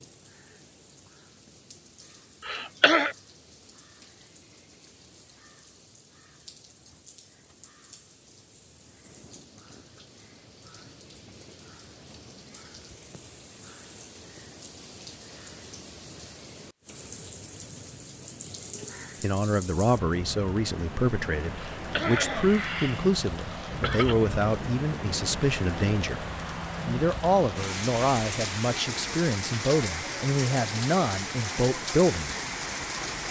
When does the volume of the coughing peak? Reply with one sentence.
The loudest moment of the coughing is at 3 seconds.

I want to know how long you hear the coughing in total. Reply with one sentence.
The coughing can be heard for 3 seconds in total.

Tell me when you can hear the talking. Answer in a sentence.
The talking can be heard from 19.2 to 26.2 s and from 26.9 to 32.4 s.